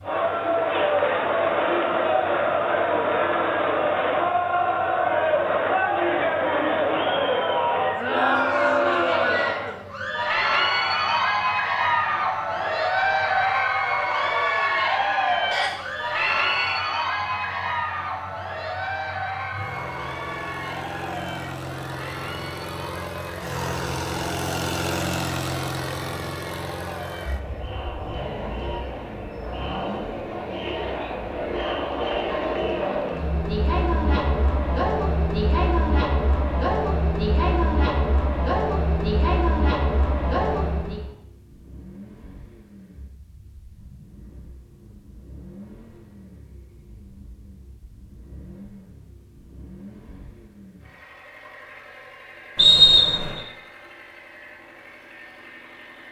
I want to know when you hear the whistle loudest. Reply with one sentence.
The loudest moment of the whistle is at 53 seconds.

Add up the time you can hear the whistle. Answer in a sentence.
You can hear the whistle for 2 seconds altogether.